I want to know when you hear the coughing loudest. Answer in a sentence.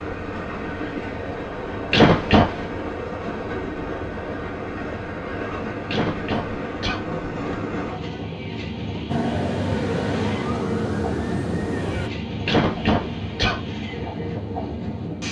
The volume of the coughing peaks at 2 seconds.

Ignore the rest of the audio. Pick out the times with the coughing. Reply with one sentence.
The coughing can be heard from 1.9 to 2.6 s, from 5.8 to 7.0 s and from 12.4 to 13.6 s.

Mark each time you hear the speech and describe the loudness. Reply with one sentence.
The speech can't be heard in this clip.